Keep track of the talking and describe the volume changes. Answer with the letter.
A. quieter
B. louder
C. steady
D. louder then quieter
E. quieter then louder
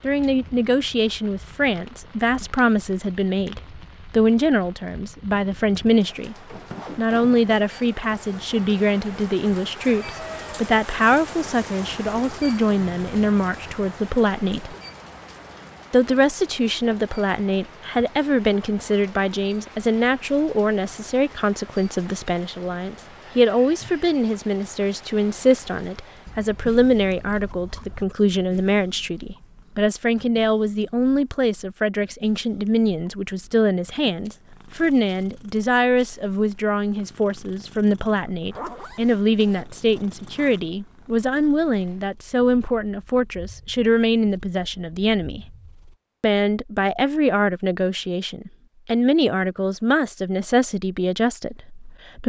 C.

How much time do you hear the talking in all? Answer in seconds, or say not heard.
50 s.